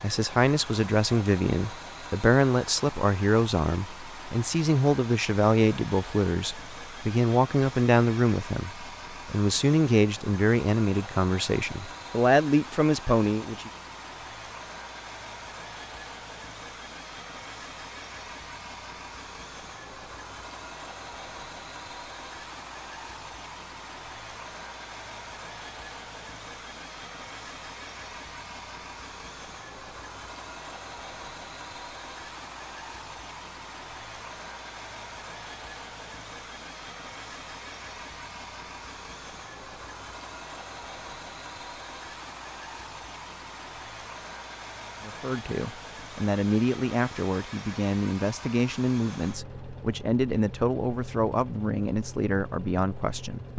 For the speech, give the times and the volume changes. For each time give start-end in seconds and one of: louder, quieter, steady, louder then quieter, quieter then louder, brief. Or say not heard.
0.0-13.7 steady
45.0-53.5 steady.